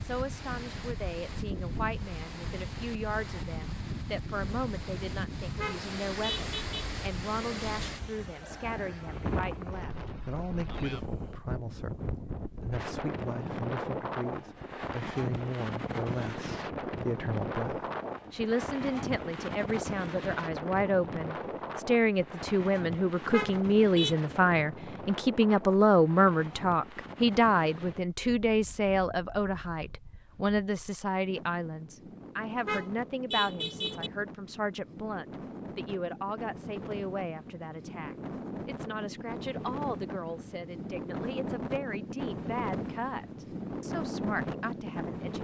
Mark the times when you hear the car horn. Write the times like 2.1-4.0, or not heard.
5.5-6.8, 23.2-24.1, 32.5-34.1.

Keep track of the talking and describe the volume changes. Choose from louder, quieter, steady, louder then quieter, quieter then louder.
louder then quieter.